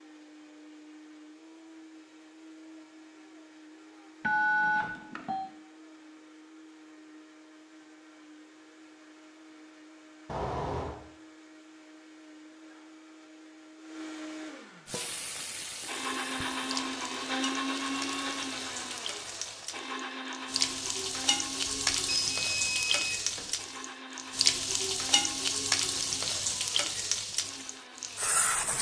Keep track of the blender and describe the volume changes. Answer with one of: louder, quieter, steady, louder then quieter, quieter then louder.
louder then quieter.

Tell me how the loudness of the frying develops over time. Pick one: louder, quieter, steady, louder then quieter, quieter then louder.
louder.